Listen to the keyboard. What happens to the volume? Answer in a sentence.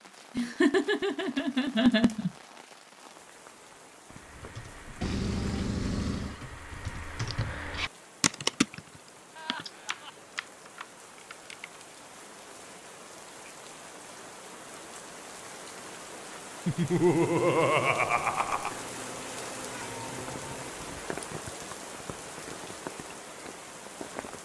The volume of the keyboard goes up, then down.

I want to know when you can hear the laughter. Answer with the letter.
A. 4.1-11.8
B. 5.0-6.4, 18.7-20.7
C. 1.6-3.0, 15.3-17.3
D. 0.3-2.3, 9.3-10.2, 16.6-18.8
D.